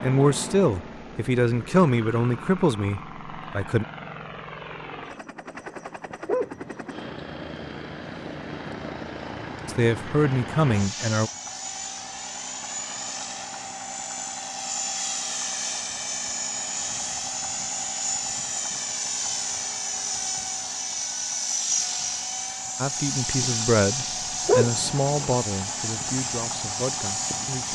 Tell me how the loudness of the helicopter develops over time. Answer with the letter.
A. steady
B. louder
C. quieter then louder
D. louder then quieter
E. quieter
B.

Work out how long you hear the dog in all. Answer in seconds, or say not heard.
2 s.